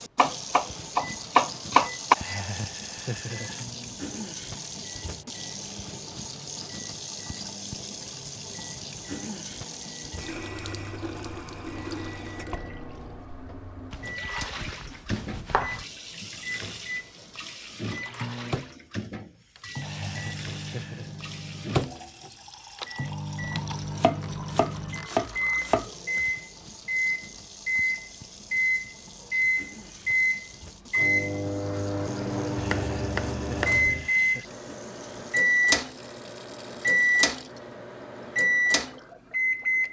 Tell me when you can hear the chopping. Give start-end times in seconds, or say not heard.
0.1-2.1, 13.9-15.8, 23.4-26.3, 32.5-34.1.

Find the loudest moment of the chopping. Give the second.
2 s.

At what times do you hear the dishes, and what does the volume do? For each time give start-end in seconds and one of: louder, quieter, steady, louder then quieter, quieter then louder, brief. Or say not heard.
not heard.